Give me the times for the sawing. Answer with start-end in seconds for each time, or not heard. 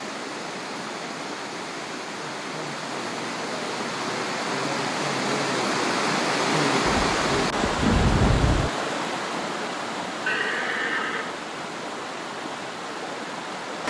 not heard.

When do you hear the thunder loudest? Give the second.
8 s.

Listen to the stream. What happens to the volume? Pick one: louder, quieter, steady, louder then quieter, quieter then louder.
louder then quieter.